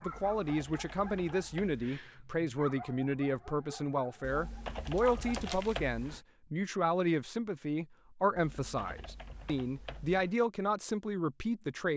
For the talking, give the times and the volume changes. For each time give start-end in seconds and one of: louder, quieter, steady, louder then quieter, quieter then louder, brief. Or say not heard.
0.0-11.9 steady.